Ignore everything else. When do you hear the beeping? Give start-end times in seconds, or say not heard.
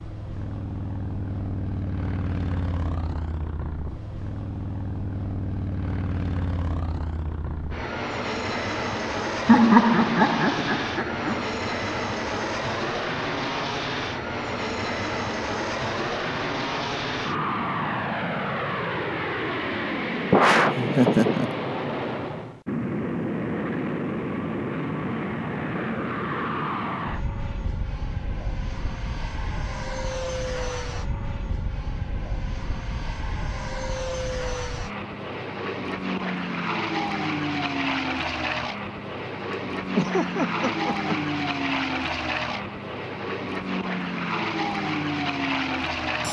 not heard.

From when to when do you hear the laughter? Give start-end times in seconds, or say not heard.
9.4-11.4, 20.3-21.5, 39.5-41.4.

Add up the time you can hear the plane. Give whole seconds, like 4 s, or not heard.
46 s.